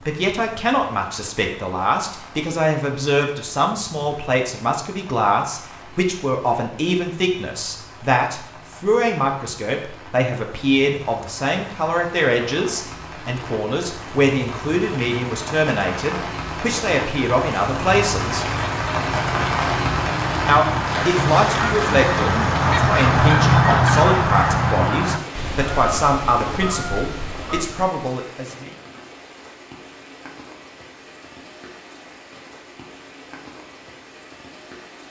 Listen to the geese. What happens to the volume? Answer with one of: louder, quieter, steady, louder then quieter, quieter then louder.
louder then quieter.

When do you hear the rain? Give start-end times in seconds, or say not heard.
0.0-35.0.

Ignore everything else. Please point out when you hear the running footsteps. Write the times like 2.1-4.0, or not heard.
not heard.